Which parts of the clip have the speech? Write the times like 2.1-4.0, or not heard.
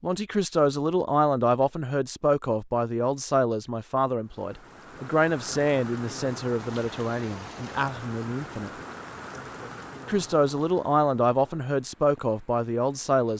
0.0-8.7, 10.1-13.3.